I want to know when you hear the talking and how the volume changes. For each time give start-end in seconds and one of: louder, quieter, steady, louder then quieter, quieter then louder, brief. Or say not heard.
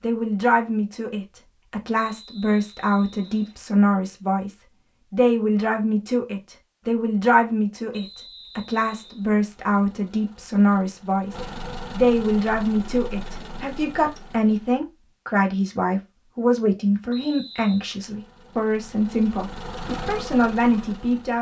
0.0-21.3 steady.